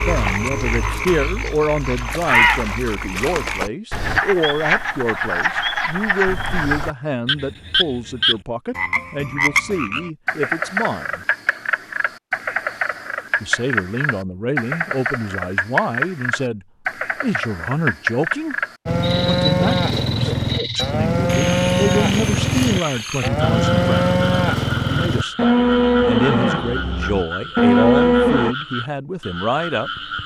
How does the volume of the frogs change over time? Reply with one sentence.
The loudness of the frogs goes down.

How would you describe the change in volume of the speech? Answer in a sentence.
The loudness of the speech stays about the same.